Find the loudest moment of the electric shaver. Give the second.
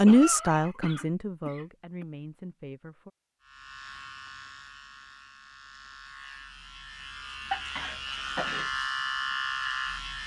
9 s.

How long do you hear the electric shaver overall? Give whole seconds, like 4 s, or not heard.
7 s.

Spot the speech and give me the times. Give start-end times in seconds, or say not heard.
0.0-3.1.